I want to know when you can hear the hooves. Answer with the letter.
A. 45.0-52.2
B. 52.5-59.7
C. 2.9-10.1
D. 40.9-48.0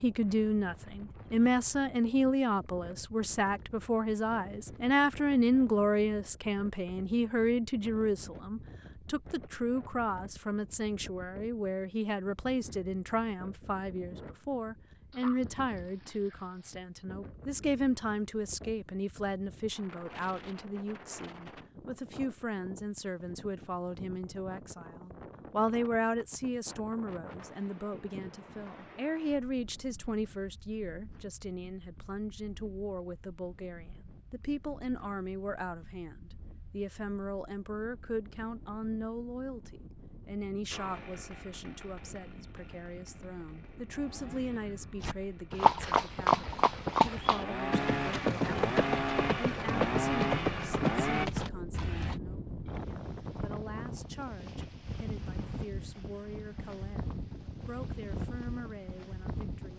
A.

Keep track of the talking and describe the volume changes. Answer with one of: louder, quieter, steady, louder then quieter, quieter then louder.
quieter.